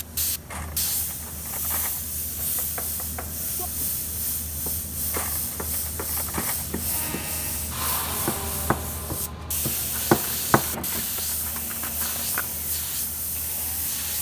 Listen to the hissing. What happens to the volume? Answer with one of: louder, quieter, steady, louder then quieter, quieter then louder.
steady.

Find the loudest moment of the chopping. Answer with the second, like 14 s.
10 s.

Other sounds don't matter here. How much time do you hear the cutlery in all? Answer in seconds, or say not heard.
6 s.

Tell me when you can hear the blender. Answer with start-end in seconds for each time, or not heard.
6.8-14.1.